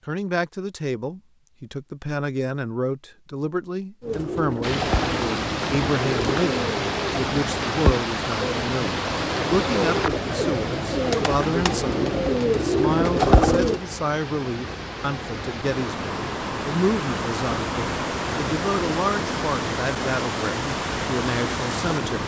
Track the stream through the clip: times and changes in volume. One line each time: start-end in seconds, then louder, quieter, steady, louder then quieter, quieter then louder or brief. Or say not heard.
4.6-22.2 quieter then louder.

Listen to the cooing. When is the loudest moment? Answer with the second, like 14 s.
13 s.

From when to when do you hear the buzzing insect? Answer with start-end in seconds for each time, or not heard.
not heard.